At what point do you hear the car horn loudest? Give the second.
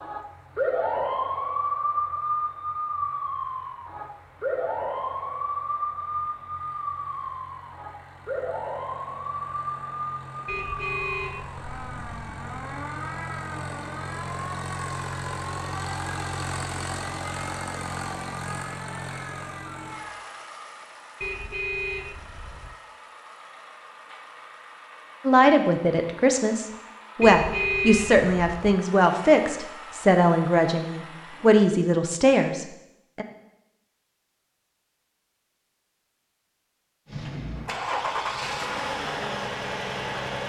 28 s.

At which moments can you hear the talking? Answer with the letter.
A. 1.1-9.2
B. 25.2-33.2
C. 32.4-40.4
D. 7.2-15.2
B.